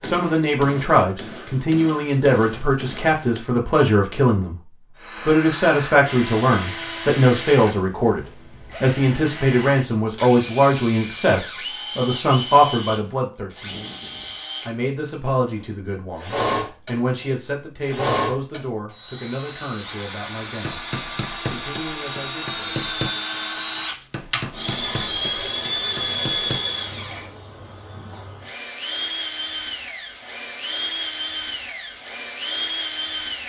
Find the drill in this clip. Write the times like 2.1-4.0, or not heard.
5.0-33.4.